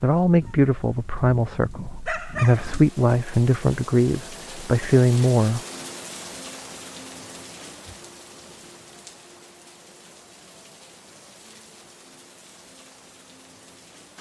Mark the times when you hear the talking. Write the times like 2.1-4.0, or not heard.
0.0-5.6.